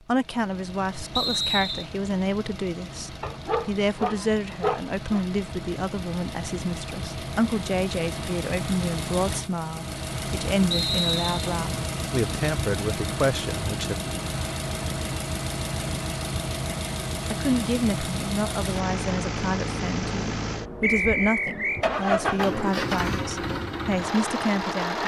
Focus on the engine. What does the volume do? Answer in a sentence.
The loudness of the engine goes up.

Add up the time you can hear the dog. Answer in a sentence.
The dog can be heard for 2 seconds in total.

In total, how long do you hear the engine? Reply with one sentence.
You can hear the engine for 25 seconds altogether.